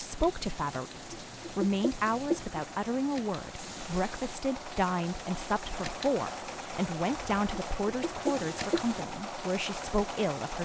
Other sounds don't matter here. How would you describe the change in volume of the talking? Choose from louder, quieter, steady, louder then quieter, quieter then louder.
steady.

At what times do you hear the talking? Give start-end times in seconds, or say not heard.
0.0-10.6.